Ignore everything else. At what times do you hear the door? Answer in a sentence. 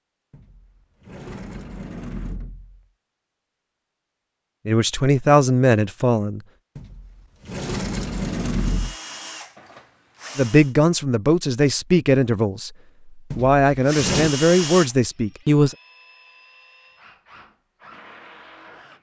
The door can be heard from 0.3 to 2.9 s, from 6.8 to 8.9 s and from 13.3 to 14.3 s.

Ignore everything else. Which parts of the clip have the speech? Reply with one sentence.
You can hear the speech from 4.7 to 6.4 s and from 10.3 to 15.8 s.